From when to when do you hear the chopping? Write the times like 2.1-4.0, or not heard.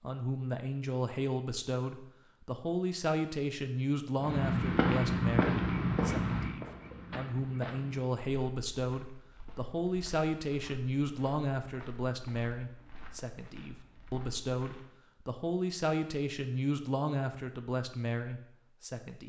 not heard.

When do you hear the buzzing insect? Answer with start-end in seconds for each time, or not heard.
not heard.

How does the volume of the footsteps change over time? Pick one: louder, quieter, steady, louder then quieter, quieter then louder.
quieter.